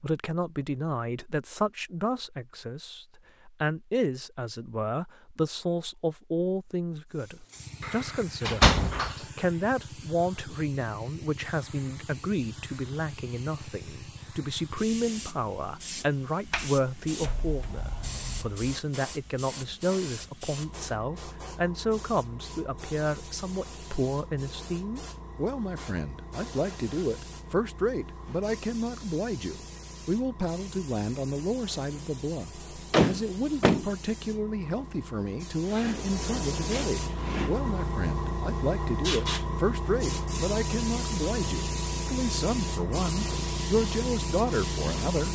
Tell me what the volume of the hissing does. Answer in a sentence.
The volume of the hissing goes up.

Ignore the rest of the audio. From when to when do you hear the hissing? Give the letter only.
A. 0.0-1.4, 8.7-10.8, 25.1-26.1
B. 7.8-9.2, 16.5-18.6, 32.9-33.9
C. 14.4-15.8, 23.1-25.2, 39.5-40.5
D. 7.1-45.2
D.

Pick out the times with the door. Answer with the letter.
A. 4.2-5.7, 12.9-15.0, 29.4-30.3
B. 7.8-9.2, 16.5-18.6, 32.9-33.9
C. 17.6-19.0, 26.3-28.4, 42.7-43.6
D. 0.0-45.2
B.